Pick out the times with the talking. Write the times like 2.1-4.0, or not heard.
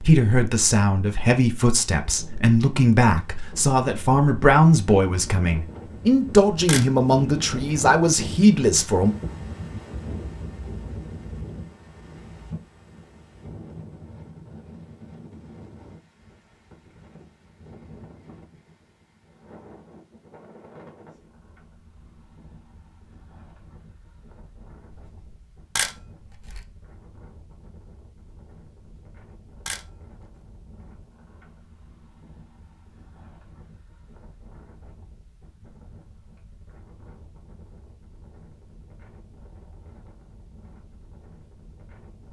0.0-9.2.